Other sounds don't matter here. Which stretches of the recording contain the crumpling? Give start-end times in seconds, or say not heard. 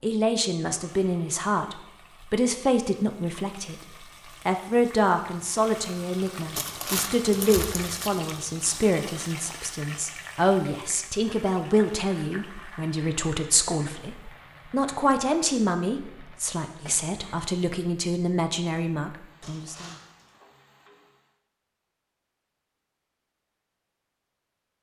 6.5-8.2, 19.4-20.4.